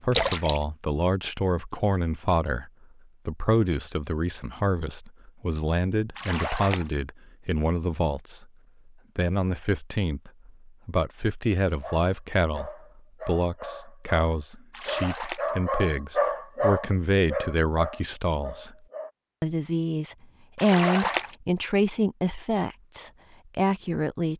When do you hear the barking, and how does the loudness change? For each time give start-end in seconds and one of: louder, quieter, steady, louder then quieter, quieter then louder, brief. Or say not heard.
11.7-19.1 louder then quieter.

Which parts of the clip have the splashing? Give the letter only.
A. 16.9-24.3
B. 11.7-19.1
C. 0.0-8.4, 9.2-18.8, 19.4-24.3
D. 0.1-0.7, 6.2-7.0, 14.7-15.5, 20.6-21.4
D.